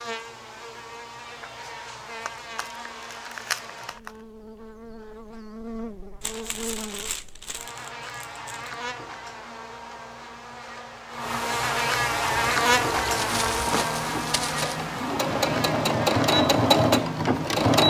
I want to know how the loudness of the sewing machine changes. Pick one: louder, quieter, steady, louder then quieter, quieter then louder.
louder.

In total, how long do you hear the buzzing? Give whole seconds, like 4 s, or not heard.
18 s.